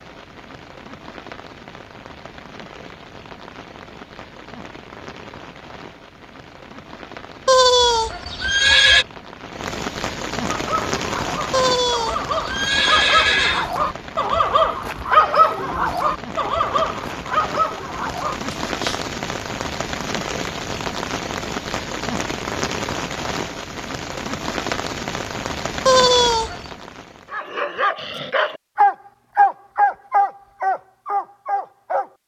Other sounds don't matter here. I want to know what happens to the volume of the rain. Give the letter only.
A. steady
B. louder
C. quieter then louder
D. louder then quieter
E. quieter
B.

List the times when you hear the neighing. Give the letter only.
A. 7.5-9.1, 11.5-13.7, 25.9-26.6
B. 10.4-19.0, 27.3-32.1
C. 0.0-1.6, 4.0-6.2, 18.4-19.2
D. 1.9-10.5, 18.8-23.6
A.